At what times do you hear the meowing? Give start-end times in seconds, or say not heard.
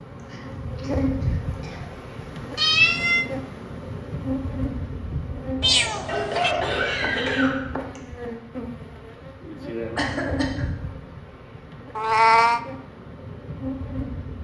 2.5-3.2, 5.6-6.5, 11.9-12.6.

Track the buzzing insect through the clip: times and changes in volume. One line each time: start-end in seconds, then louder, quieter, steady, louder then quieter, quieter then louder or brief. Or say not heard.
0.0-14.4 quieter.